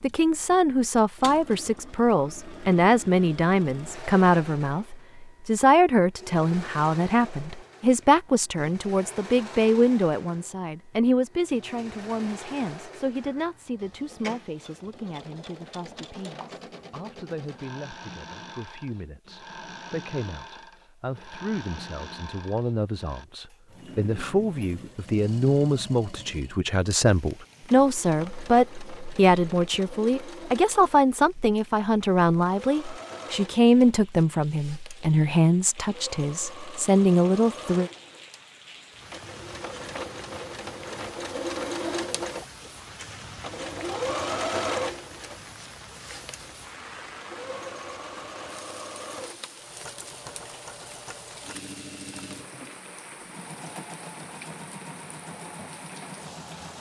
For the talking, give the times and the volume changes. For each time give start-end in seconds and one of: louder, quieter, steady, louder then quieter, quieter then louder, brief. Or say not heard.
0.0-37.9 quieter then louder.